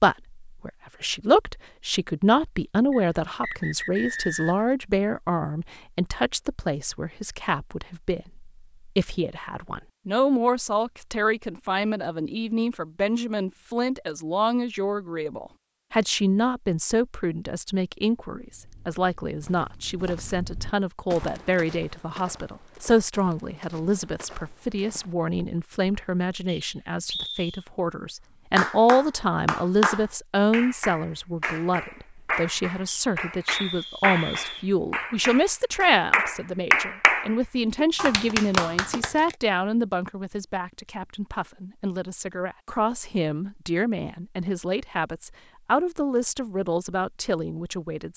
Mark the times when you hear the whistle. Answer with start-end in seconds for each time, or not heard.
2.9-4.7, 26.4-27.6, 32.9-34.7.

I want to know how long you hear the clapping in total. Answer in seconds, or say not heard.
11 s.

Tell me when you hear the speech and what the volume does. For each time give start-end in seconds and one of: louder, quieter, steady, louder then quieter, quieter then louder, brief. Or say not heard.
0.0-48.1 steady.